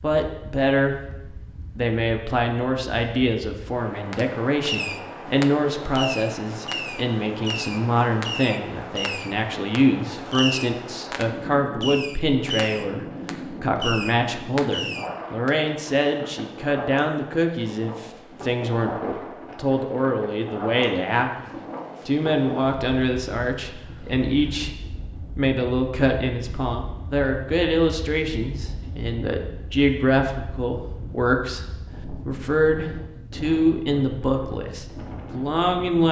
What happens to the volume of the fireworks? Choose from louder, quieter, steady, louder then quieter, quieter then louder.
steady.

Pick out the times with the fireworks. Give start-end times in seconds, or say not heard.
4.1-15.6.